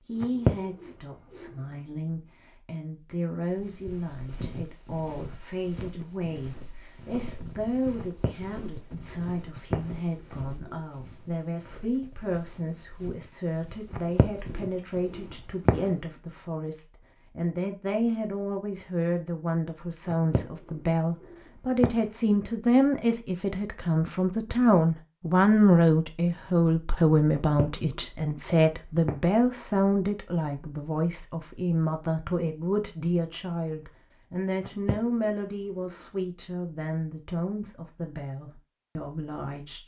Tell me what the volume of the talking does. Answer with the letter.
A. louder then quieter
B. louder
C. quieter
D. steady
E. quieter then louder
A.